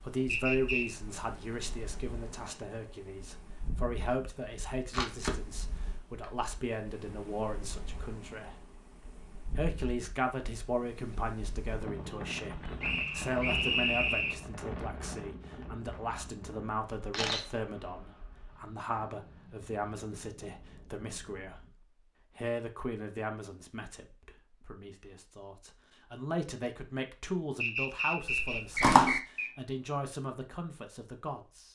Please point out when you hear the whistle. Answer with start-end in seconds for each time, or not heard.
0.2-0.8, 12.8-14.3, 27.6-29.5.